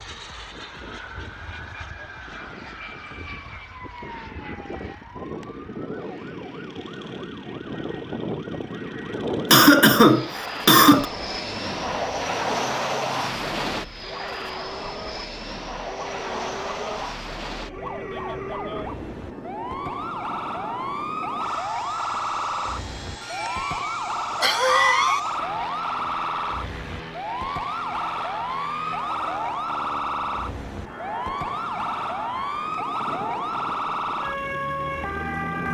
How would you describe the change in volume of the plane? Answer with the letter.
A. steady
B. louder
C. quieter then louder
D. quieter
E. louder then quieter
E.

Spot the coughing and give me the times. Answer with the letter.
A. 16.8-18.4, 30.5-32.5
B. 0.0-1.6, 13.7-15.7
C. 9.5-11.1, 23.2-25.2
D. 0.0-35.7
C.